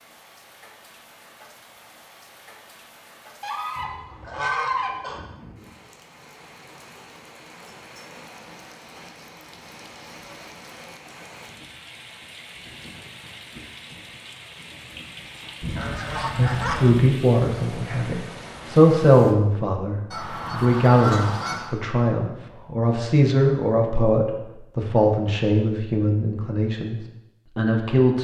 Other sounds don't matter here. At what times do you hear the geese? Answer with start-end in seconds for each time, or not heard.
3.4-5.2, 15.6-17.1, 20.1-21.8.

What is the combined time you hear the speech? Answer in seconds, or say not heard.
12 s.